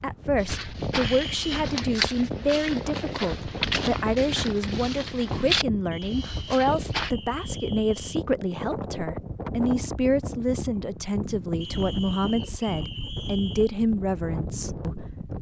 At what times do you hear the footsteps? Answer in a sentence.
The footsteps can be heard from 0.3 to 7.1 s.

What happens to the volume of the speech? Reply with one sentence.
The volume of the speech stays about the same.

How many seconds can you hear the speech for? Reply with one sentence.
The speech can be heard for 15 seconds in total.